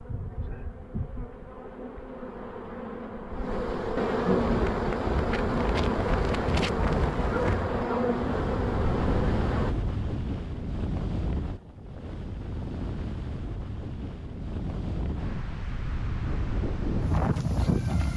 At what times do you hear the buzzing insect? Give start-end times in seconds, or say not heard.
0.0-9.8.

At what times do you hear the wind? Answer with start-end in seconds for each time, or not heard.
4.3-18.1.